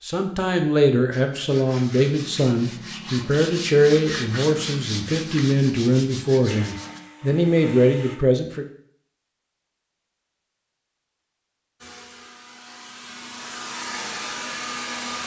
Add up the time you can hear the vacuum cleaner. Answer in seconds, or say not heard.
5 s.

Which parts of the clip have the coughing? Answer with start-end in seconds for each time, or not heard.
not heard.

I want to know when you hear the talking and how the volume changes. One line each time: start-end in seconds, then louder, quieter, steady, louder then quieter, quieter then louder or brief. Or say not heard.
0.1-8.7 steady.